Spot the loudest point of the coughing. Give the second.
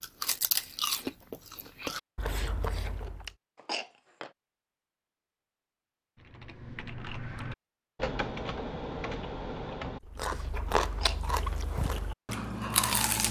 4 s.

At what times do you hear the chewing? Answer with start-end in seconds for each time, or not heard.
0.0-3.3, 10.1-13.2.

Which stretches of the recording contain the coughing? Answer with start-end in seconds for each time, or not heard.
3.5-4.3, 10.9-11.6.